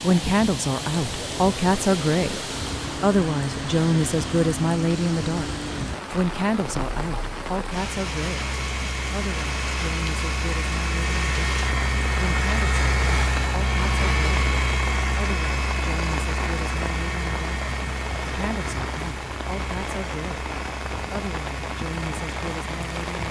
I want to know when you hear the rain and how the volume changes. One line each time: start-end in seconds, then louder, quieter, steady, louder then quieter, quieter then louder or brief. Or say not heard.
0.0-23.2 steady.